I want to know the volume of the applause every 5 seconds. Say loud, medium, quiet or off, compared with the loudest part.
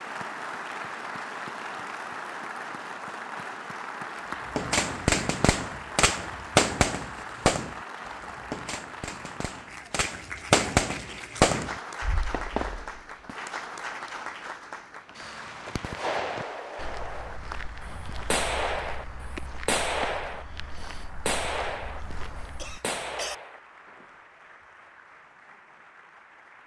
loud, loud, loud, medium, quiet, quiet.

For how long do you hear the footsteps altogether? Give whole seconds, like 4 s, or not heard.
8 s.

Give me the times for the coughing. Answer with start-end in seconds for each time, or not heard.
22.6-23.4.